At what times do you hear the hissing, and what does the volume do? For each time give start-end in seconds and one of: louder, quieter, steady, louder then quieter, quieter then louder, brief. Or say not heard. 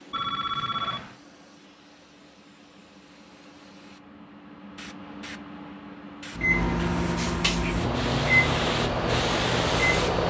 0.0-10.2 louder.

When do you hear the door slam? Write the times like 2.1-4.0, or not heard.
not heard.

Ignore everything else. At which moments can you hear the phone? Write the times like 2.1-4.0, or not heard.
0.1-1.1.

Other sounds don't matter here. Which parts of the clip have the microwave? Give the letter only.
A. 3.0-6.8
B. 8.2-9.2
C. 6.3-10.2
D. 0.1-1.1
C.